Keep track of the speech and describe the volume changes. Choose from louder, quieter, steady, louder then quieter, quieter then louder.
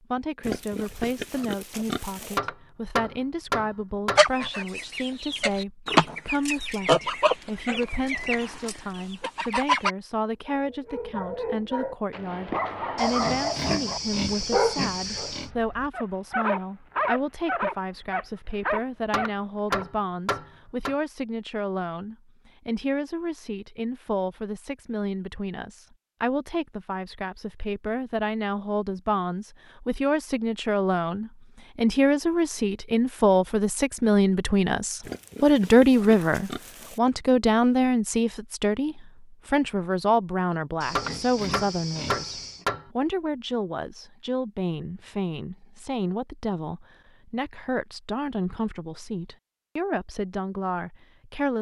louder then quieter.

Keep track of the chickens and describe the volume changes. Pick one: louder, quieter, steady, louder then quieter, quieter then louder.
louder then quieter.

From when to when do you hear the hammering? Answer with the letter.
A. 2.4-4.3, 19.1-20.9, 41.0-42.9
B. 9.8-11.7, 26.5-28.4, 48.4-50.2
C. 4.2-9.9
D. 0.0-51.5
A.